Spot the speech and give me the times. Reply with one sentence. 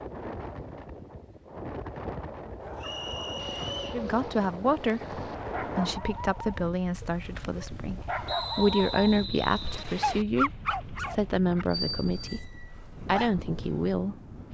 The speech can be heard from 3.9 to 14.2 s.